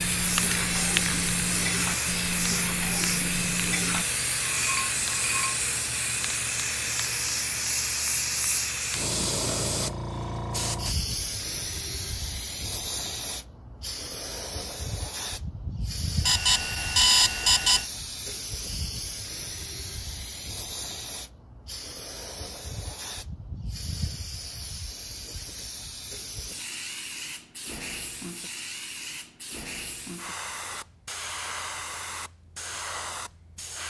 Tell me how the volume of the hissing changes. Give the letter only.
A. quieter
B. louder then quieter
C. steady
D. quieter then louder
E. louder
A.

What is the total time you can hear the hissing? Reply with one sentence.
The hissing can be heard for 34 seconds in total.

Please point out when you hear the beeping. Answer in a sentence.
The beeping can be heard from 16.2 to 17.9 s.